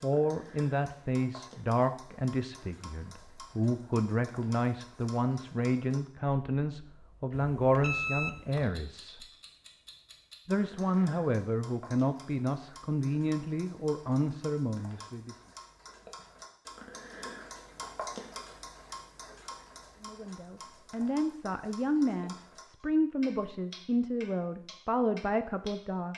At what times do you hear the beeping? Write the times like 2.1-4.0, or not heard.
7.3-8.7.